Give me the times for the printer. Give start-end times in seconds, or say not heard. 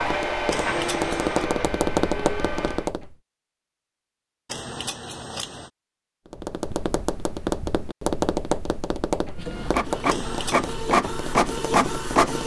0.0-2.9, 9.3-12.4.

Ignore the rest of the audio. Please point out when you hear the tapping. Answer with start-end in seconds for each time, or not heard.
0.0-3.1, 6.3-12.4.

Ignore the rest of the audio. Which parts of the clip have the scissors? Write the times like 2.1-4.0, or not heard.
0.5-1.4, 4.5-5.7, 10.1-10.8.